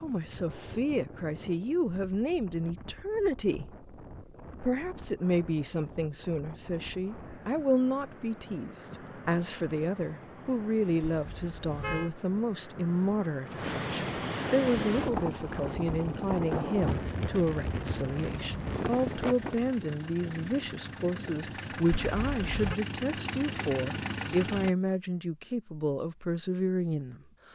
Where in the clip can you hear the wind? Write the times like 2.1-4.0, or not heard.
0.0-19.8.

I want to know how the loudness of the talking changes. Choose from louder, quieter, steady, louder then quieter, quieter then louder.
steady.